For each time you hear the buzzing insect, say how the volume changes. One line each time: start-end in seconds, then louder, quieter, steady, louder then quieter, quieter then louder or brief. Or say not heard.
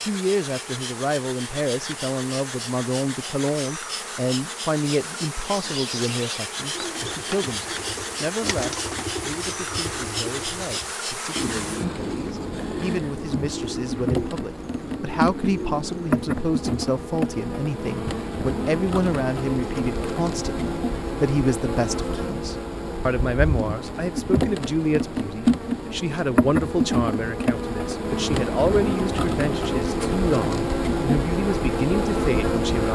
0.0-32.9 louder.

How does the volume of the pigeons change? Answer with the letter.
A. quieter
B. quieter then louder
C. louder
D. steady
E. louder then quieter
D.